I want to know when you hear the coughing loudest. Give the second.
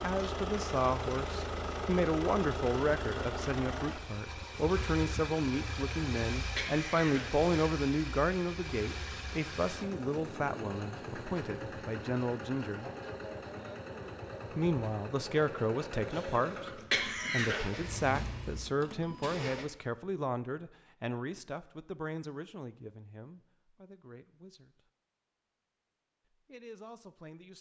17 s.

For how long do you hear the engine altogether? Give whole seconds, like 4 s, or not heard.
20 s.